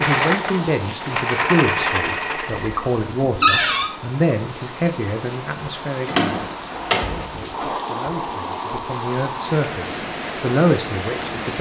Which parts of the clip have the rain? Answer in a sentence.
You can hear the rain from 0.1 to 11.5 s.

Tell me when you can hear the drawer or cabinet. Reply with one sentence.
The drawer or cabinet can be heard from 3.4 to 3.9 s and from 6.0 to 7.7 s.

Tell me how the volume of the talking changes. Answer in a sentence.
The loudness of the talking goes down, then up.